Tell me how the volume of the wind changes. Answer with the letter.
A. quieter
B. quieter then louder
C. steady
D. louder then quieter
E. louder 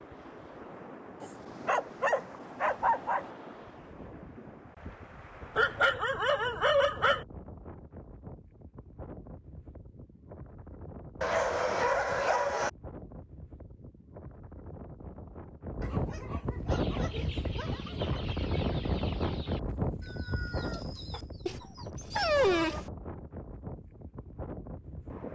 D.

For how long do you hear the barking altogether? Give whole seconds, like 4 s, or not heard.
9 s.